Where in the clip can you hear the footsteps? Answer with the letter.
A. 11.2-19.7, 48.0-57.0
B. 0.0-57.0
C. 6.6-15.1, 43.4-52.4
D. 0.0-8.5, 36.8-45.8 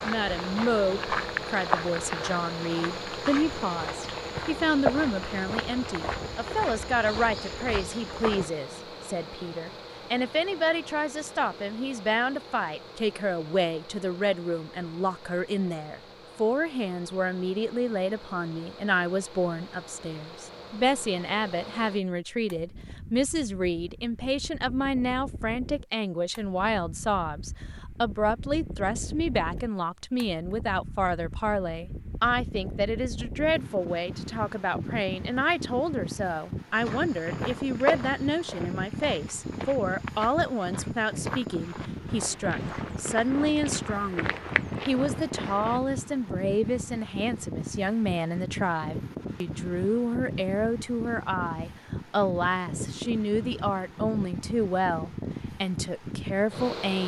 D.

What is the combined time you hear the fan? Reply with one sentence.
The fan can be heard for 57 seconds in total.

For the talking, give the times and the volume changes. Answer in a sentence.
The talking can be heard from 0.0 to 57.0 s, at a steady volume.